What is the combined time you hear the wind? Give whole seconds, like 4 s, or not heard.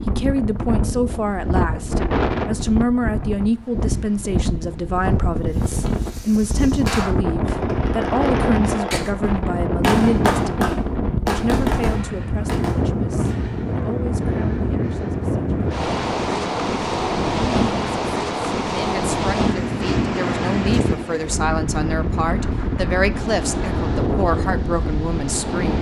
26 s.